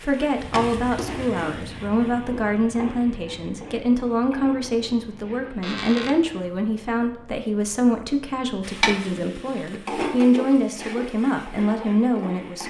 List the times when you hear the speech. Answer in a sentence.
The speech can be heard from 0.0 to 12.6 s.